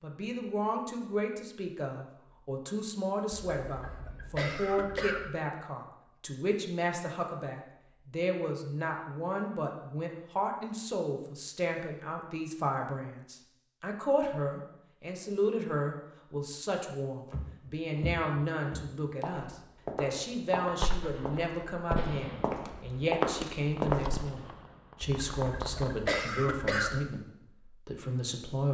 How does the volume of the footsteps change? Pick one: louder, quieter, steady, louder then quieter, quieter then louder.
louder.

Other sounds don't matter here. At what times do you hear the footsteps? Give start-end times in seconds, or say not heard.
17.2-24.1.